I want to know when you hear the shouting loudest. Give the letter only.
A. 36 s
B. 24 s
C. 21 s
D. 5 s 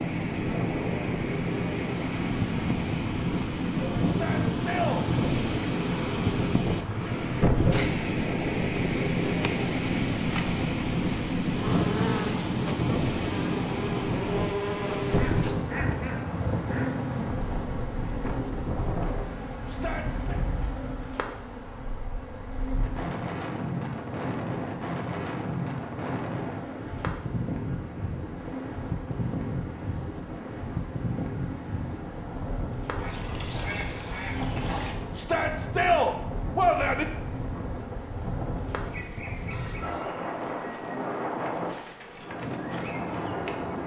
A.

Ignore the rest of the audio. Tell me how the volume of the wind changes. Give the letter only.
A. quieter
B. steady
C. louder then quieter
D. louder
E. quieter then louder
A.